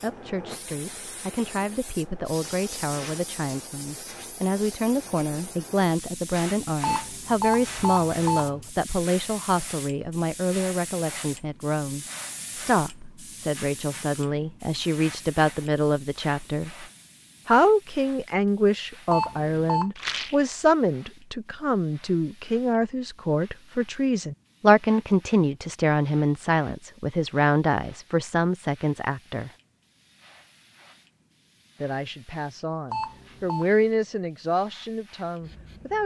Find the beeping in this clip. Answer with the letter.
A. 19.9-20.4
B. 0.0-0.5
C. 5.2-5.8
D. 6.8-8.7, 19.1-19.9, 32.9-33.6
D.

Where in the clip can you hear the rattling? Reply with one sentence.
The rattling can be heard from 19.9 to 20.4 s.